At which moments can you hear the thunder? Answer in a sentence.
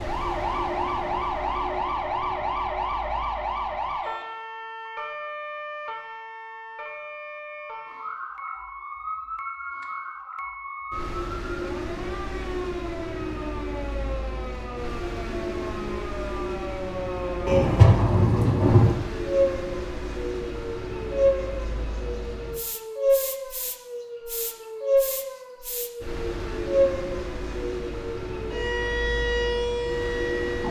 You can hear the thunder from 17.4 to 18.9 s.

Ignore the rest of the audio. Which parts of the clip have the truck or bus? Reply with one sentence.
The truck or bus can be heard from 0.0 to 30.6 s.